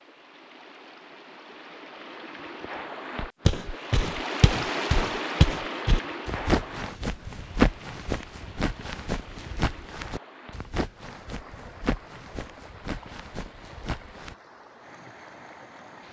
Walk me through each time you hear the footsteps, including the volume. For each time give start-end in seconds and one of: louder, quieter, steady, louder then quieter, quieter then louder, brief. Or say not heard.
3.2-14.3 quieter.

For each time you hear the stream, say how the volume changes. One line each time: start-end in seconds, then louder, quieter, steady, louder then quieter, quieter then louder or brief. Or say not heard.
0.0-16.0 louder then quieter.